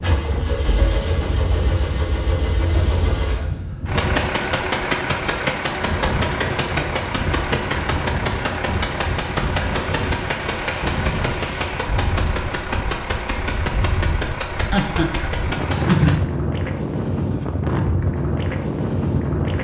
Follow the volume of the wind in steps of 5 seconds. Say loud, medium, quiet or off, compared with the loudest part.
medium, medium, medium, loud.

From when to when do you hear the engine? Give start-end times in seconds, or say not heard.
0.0-16.2.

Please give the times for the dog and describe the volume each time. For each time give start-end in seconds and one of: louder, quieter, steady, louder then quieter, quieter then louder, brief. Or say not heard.
not heard.